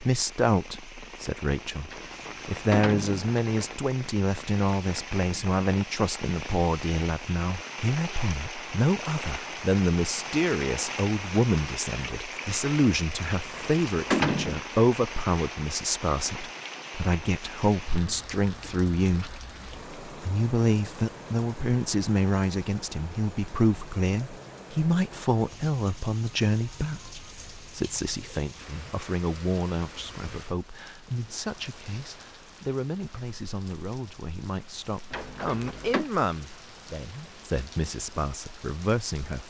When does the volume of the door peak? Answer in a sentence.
The loudest moment of the door is at 14 seconds.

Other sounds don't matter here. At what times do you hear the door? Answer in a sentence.
You can hear the door from 1.9 to 3.8 s, from 13.3 to 14.6 s and from 35.1 to 36.1 s.